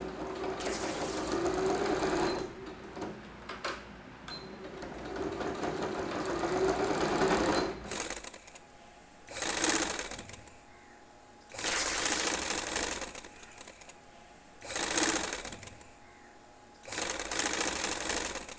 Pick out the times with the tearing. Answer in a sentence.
The tearing can be heard from 0.6 to 1.4 s and from 11.7 to 12.3 s.